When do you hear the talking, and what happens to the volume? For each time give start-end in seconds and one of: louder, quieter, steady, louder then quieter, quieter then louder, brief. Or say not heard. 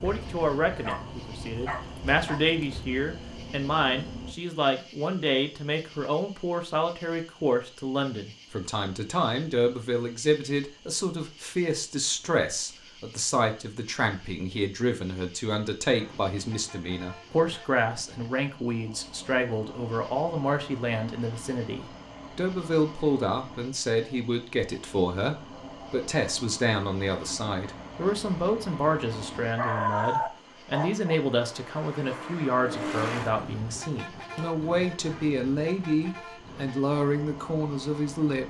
0.0-38.4 steady.